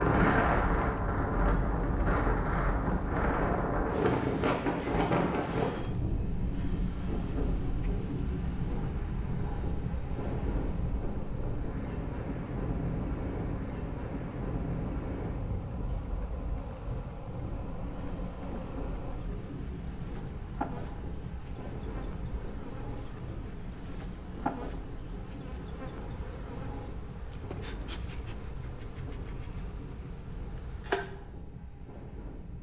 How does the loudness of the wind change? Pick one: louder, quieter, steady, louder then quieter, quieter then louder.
quieter.